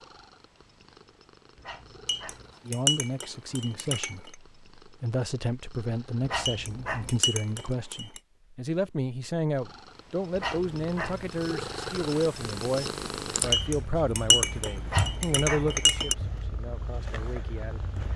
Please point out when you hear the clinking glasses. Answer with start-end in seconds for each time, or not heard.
2.0-4.3, 6.5-8.2, 13.5-16.1.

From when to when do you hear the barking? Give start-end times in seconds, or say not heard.
1.6-2.5, 6.2-7.2, 10.3-11.3, 14.8-15.8.